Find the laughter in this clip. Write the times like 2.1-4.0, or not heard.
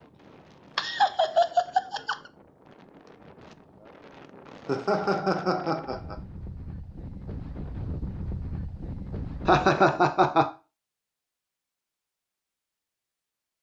0.8-2.1, 4.7-6.2, 9.4-10.5.